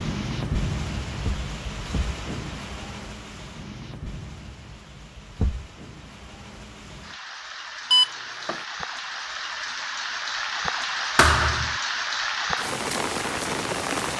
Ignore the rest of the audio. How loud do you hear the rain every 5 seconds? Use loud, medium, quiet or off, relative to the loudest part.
medium, medium, loud.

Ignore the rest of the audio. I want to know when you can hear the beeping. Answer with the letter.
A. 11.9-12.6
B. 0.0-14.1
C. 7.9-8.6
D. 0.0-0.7
C.